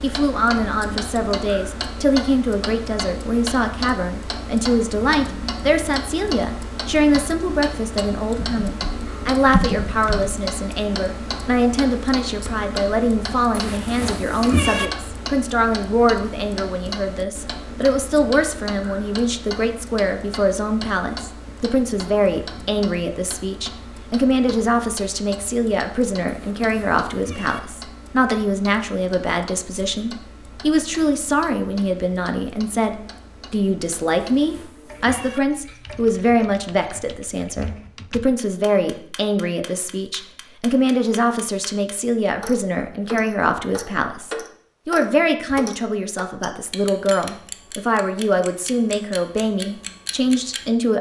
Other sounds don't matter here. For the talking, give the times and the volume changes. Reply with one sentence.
You can hear the talking from 0.0 to 50.9 s, at a steady volume.